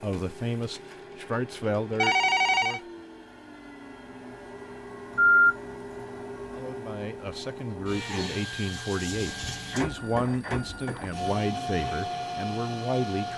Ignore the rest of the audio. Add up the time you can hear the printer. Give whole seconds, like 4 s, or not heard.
13 s.